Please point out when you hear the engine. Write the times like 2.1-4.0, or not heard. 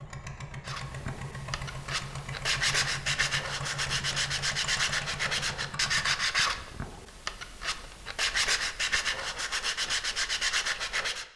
0.0-6.3.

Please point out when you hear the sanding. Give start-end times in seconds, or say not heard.
0.7-11.2.